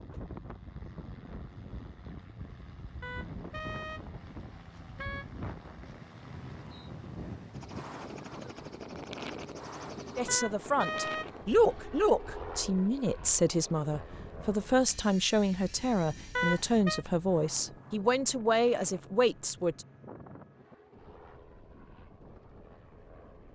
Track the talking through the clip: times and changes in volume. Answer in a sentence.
You can hear the talking from 10.2 to 19.9 s, at a steady volume.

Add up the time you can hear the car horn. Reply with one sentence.
The car horn can be heard for 5 seconds in total.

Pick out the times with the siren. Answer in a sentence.
You can't hear the siren here.